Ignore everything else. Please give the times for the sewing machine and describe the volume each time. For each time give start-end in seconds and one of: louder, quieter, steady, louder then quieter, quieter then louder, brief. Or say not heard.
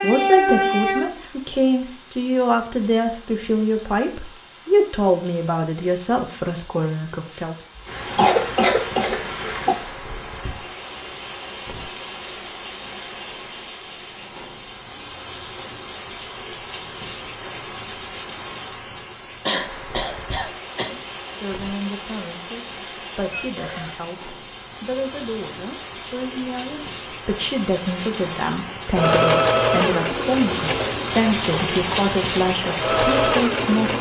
28.7-33.9 quieter then louder.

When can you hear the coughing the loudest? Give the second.
8 s.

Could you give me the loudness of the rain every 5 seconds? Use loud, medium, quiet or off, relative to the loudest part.
loud, medium, medium, medium, medium, medium, loud.